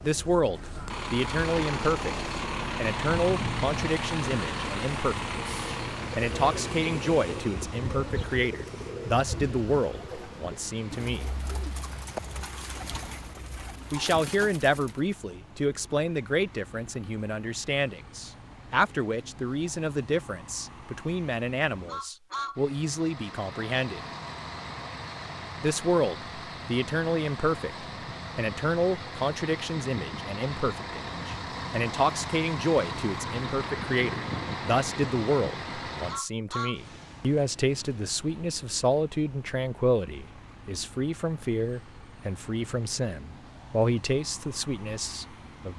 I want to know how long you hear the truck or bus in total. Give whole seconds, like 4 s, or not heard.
46 s.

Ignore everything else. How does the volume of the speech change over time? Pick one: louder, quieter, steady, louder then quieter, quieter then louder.
steady.